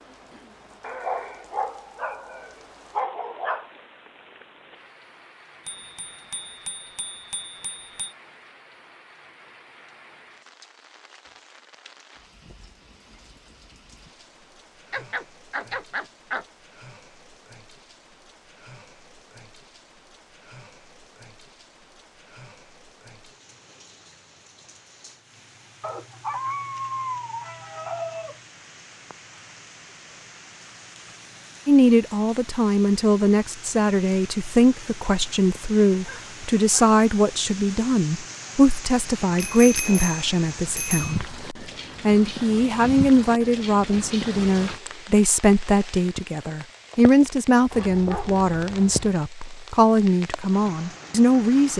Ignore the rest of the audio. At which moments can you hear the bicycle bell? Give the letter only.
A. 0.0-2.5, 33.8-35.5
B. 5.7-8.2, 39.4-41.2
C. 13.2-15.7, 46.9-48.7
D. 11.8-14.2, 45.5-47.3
B.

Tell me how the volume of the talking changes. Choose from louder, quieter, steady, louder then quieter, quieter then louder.
steady.